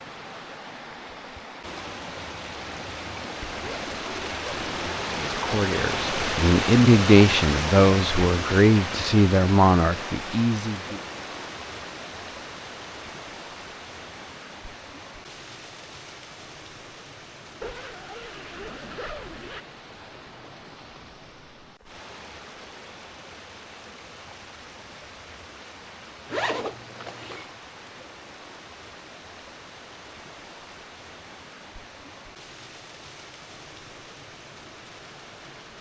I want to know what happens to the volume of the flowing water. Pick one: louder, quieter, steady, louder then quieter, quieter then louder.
quieter.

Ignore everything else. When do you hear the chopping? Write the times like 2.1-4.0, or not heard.
not heard.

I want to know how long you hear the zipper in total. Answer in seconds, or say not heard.
5 s.